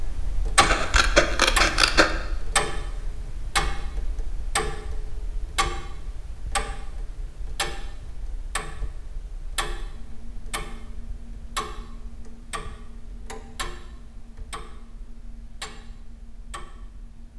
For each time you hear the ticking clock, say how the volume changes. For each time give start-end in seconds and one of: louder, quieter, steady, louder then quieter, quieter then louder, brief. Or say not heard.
0.0-17.3 quieter.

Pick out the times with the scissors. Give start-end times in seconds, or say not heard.
0.6-2.1.